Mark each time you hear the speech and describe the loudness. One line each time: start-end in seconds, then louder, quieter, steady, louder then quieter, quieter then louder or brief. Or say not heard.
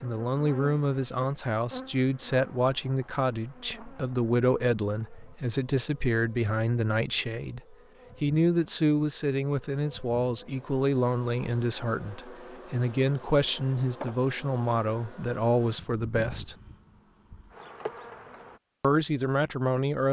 0.0-16.6 steady
18.8-20.0 brief.